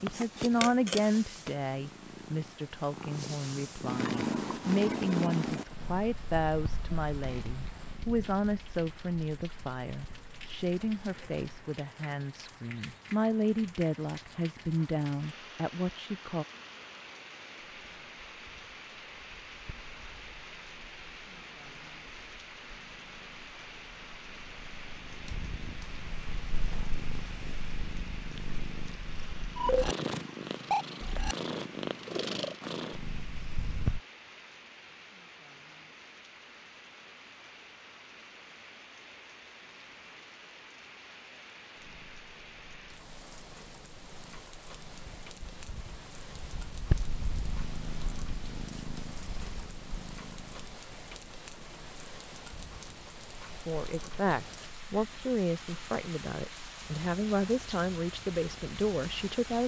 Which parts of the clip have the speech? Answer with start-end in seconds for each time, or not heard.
0.0-16.4, 53.6-59.6.